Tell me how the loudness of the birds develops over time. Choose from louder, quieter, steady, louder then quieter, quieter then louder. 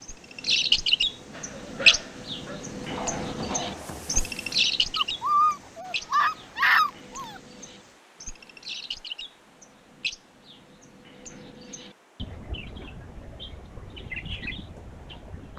quieter.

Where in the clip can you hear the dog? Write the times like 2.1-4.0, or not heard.
1.3-7.3.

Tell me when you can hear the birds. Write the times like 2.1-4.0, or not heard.
0.0-15.5.